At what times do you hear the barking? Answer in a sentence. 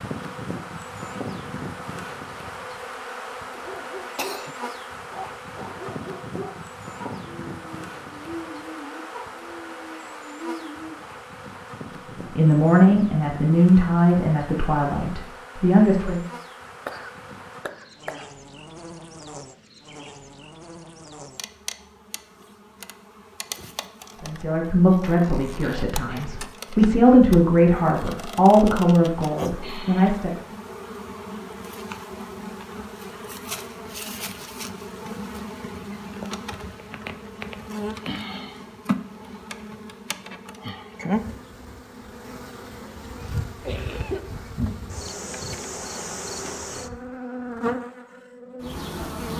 You can hear the barking from 3.5 to 10.9 s.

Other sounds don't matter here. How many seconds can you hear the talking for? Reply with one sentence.
The talking can be heard for 10 seconds in total.